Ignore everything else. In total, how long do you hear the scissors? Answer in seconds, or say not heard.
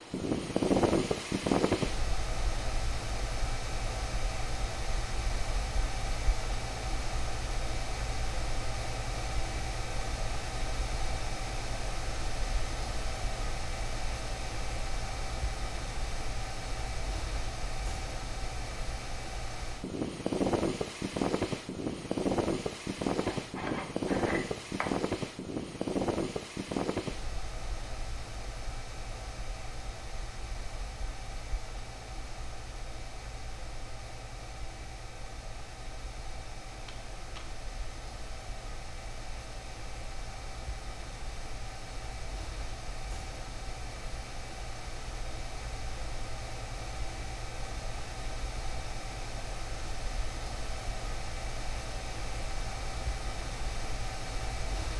3 s.